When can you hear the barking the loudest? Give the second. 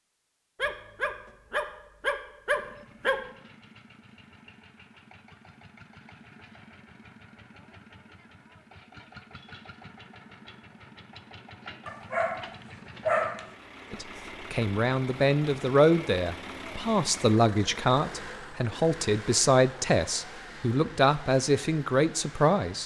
13 s.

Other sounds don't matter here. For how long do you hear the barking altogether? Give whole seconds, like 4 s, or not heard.
4 s.